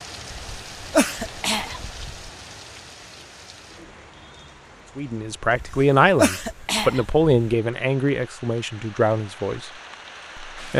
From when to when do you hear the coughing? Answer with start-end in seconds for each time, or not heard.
0.3-2.3, 5.5-7.3.